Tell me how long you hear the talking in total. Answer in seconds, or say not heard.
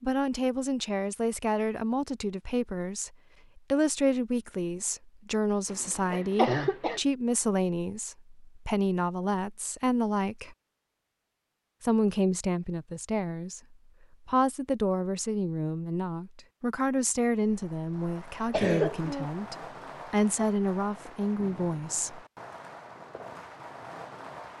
21 s.